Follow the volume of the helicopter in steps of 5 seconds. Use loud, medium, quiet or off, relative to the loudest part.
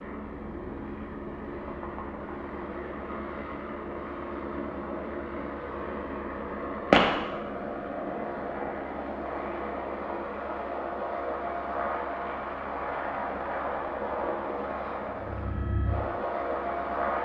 medium, loud, loud, loud.